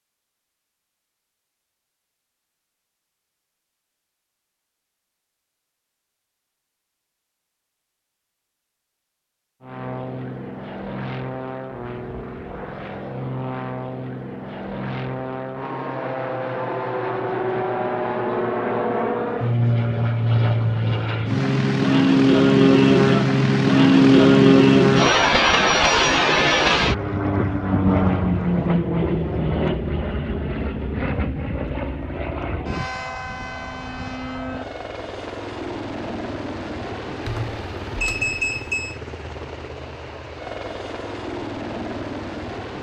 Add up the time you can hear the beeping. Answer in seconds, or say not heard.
2 s.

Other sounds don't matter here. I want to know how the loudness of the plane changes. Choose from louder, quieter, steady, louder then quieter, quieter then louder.
louder then quieter.